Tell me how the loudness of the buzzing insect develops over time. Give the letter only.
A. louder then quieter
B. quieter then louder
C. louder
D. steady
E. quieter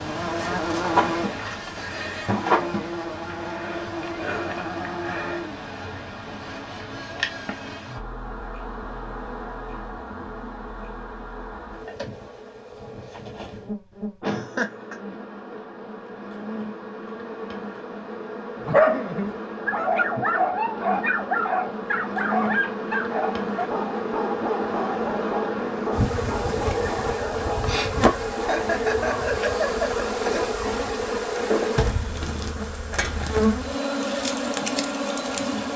B.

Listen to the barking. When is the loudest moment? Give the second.
19 s.